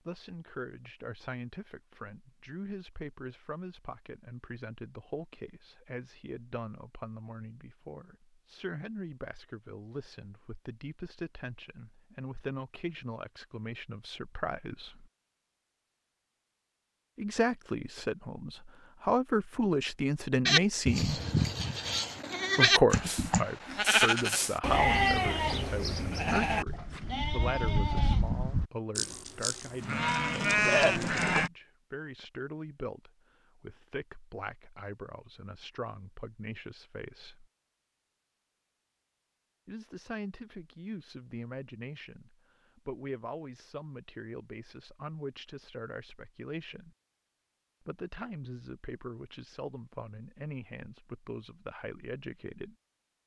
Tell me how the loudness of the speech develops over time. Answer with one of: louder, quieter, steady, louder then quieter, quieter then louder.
louder then quieter.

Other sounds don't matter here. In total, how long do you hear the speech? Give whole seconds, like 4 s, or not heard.
46 s.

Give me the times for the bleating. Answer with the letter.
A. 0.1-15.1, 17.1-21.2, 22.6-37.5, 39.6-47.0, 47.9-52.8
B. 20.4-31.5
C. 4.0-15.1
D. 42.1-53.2
B.